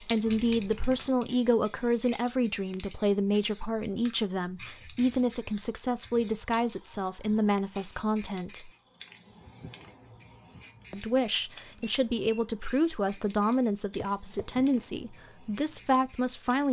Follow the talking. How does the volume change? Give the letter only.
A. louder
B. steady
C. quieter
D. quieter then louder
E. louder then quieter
B.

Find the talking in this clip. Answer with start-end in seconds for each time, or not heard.
0.0-8.7, 10.9-16.6.